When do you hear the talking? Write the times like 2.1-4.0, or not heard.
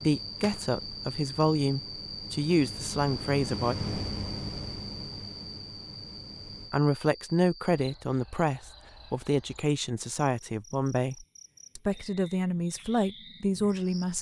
0.0-3.8, 6.7-14.1.